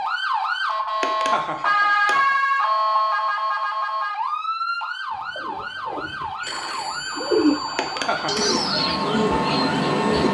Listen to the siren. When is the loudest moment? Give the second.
2 s.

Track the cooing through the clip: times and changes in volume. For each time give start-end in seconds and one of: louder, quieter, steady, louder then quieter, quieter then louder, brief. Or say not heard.
5.3-10.2 louder then quieter.